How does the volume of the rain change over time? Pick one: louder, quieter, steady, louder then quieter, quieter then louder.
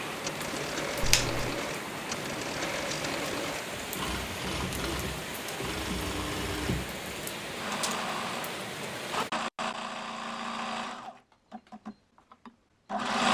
steady.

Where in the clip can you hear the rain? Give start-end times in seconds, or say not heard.
0.0-9.3.